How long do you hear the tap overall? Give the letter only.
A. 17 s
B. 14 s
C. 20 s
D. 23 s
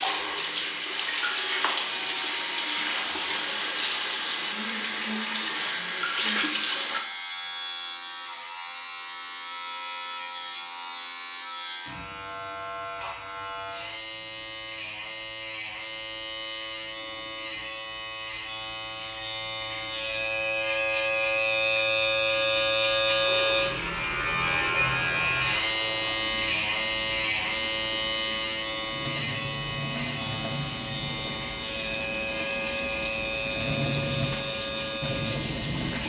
C.